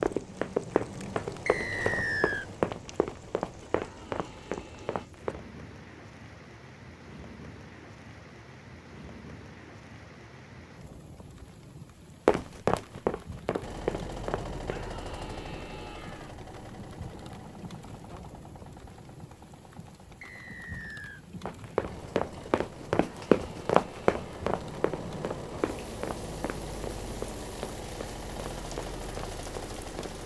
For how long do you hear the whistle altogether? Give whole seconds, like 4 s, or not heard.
2 s.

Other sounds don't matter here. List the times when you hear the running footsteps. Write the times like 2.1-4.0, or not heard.
0.0-5.6, 12.2-14.8, 21.4-30.2.